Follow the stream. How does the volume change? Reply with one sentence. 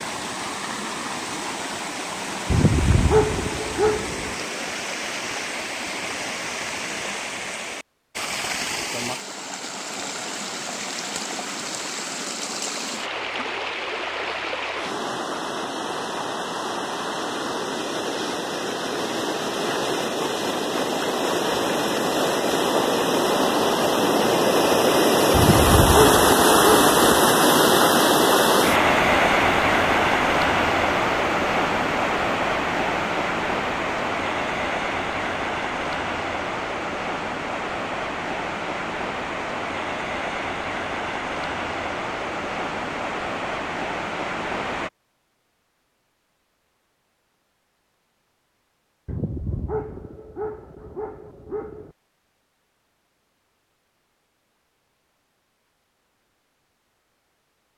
The volume of the stream goes up, then down.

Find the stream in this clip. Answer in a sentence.
The stream can be heard from 0.0 to 44.9 s.